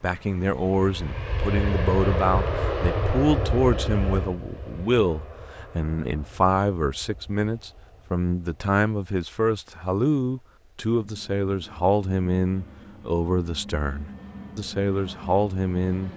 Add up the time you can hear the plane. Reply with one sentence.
You can hear the plane for 16 seconds altogether.